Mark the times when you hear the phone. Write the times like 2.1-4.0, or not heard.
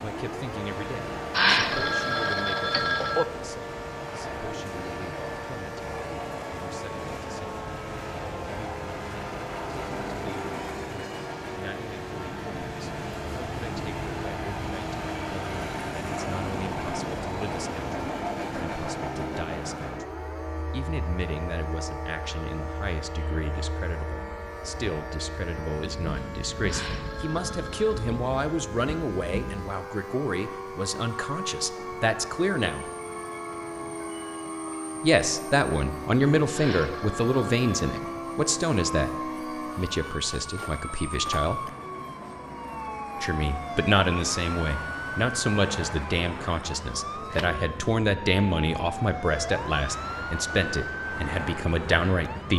1.3-3.2, 26.6-28.1, 36.5-38.0.